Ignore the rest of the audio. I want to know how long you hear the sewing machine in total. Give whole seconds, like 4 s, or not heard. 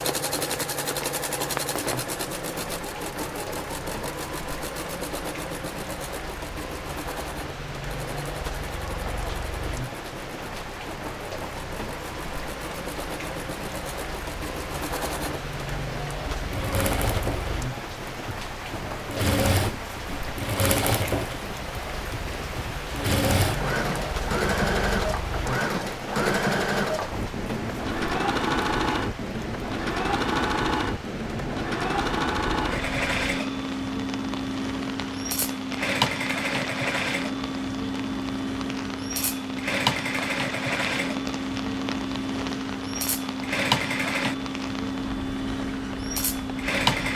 47 s.